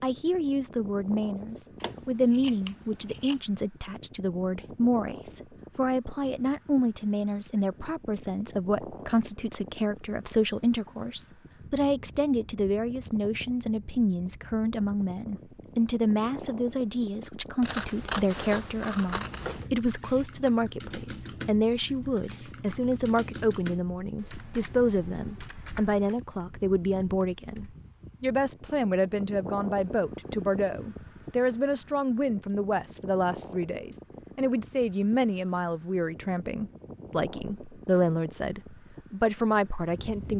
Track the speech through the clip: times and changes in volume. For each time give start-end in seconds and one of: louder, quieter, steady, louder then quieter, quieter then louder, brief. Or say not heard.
0.0-40.3 steady.